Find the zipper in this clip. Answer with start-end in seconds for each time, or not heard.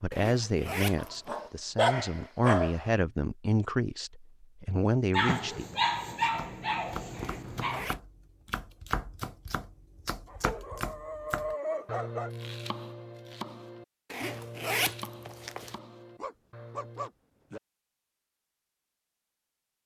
0.1-1.4, 7.2-8.0, 14.1-15.8.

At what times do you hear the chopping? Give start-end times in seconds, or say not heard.
6.3-17.1.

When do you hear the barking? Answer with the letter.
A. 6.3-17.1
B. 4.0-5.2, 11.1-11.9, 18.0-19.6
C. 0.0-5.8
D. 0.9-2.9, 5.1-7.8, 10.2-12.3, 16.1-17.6
D.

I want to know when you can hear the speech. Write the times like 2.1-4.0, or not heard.
0.0-5.8.